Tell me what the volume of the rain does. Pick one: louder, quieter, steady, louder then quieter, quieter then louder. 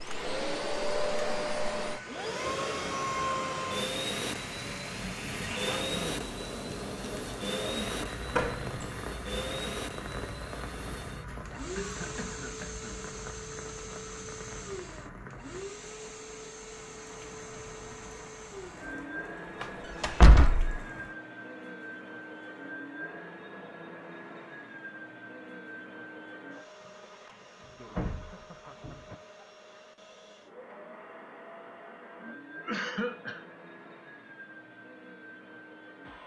quieter.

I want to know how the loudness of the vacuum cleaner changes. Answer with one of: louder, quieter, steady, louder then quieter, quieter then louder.
quieter.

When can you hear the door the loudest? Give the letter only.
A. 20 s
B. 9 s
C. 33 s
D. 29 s
A.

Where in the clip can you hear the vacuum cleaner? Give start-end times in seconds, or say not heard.
0.0-36.2.